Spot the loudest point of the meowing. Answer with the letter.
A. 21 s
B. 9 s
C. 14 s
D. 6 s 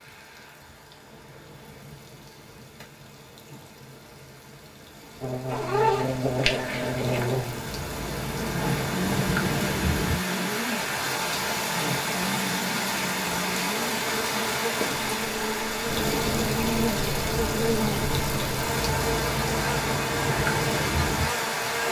D.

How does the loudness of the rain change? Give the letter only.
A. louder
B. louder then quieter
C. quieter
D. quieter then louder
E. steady
A.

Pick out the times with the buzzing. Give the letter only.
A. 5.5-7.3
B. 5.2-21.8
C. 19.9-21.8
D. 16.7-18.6
B.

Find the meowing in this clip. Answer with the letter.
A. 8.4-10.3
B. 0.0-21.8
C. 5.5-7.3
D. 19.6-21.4
C.